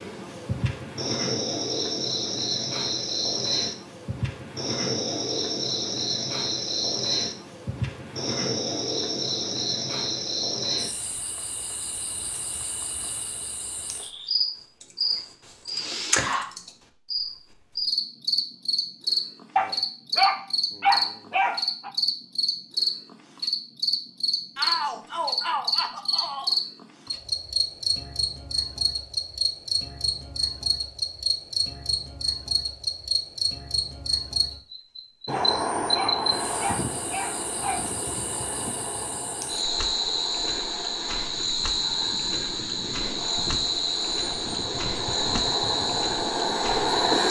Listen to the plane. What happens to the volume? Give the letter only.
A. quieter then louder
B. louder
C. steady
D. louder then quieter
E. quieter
A.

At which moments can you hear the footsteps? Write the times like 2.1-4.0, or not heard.
not heard.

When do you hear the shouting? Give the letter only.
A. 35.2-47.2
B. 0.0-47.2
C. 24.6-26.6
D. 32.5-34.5
C.